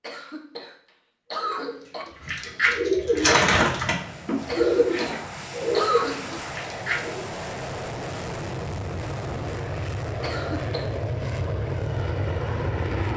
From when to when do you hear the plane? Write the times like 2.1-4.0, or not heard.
3.0-13.1.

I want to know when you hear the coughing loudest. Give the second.
6 s.